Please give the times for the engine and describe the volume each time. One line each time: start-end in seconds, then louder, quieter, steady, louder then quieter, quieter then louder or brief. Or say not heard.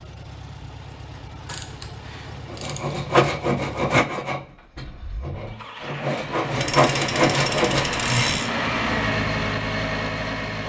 0.0-10.6 louder.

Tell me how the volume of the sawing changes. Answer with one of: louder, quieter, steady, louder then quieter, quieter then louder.
quieter then louder.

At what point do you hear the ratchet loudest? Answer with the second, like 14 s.
8 s.